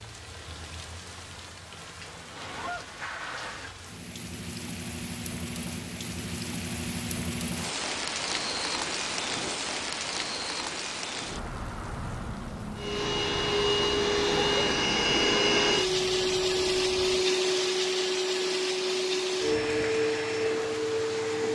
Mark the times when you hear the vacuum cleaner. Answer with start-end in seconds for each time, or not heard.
12.8-21.5.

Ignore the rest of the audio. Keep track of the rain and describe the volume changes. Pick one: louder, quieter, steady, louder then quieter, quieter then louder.
louder then quieter.